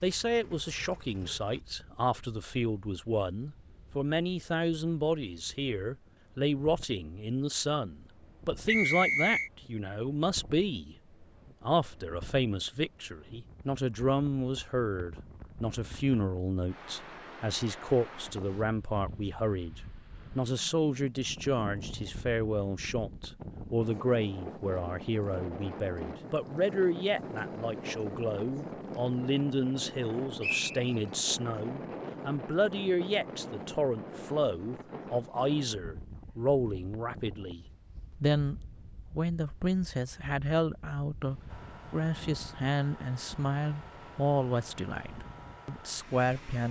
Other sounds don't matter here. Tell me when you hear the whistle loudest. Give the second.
9 s.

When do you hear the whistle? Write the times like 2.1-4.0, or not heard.
8.7-9.5, 30.4-30.9.